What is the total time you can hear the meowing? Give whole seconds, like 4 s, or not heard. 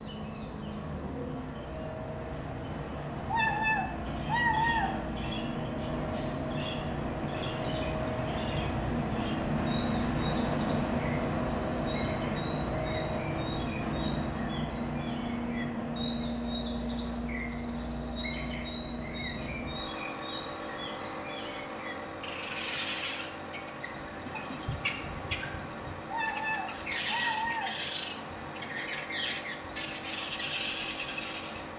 3 s.